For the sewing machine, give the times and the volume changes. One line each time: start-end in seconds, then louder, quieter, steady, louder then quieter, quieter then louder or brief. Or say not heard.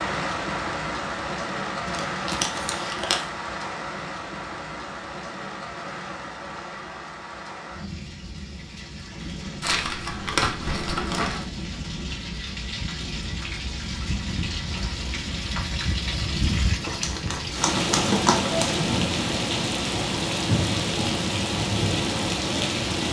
not heard.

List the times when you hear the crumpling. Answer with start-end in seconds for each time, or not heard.
1.9-3.2, 9.6-11.4, 16.8-18.8.